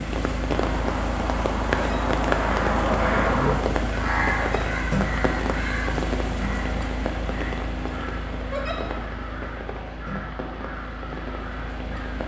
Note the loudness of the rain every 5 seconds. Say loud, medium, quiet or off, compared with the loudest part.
loud, loud, medium.